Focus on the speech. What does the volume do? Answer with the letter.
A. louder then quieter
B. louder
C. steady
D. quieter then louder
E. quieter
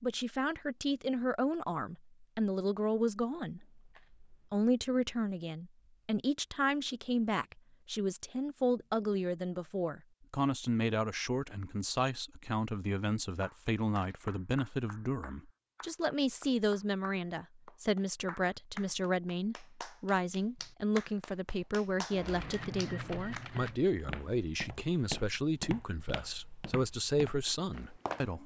C.